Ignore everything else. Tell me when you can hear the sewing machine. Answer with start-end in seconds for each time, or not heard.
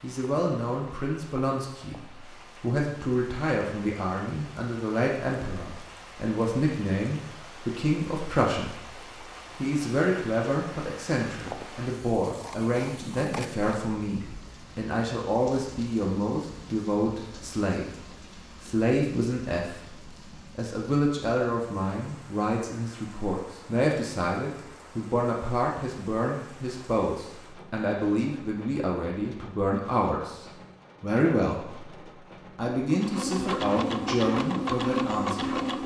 32.9-35.8.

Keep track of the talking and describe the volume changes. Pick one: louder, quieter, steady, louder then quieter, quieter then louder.
steady.